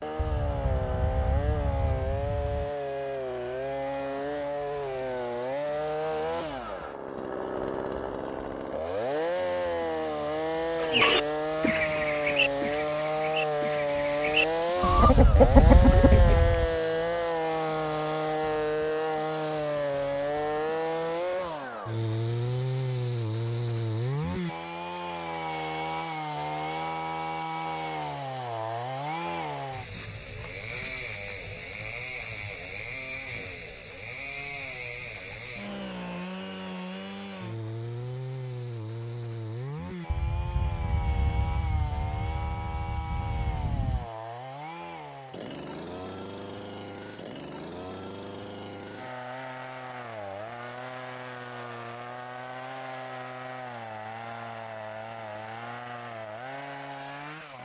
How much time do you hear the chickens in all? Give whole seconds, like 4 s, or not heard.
6 s.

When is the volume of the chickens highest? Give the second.
16 s.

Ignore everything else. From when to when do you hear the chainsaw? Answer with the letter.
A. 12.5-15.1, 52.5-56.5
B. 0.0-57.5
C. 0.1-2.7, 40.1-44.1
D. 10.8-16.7
B.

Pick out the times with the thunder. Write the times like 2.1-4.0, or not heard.
0.1-2.7, 40.1-44.1.